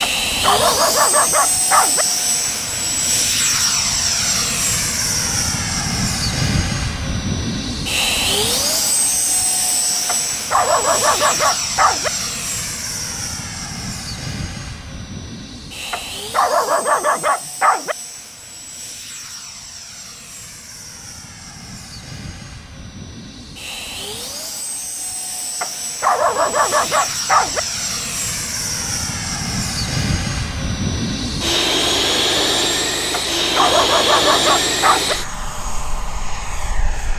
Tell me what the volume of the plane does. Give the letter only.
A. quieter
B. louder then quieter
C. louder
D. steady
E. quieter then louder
E.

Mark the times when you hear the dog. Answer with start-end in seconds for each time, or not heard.
0.0-2.0, 10.1-12.1, 15.9-17.9, 25.6-27.6, 33.1-35.1.